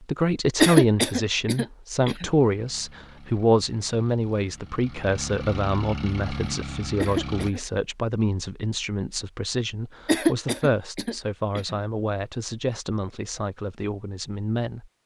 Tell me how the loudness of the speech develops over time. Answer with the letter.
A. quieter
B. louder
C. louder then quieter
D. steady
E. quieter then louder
A.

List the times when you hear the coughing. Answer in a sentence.
The coughing can be heard from 0.6 to 2.3 s, from 7.0 to 7.6 s and from 10.1 to 11.8 s.